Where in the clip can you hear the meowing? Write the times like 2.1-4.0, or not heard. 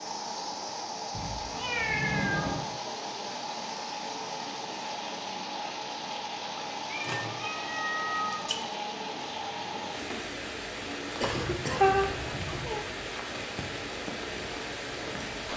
1.1-2.6, 6.9-8.6, 11.2-12.8.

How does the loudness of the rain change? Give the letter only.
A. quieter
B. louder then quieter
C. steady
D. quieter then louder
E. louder
C.